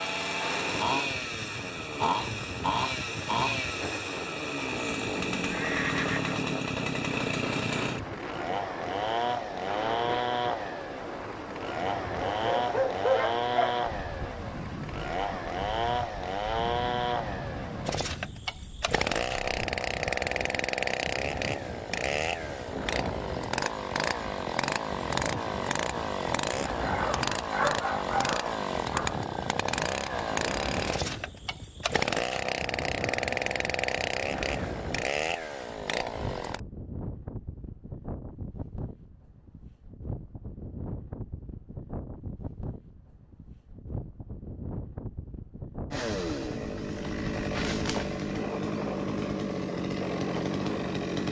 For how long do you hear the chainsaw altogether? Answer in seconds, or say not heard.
42 s.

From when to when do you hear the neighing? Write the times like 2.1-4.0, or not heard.
5.5-6.4.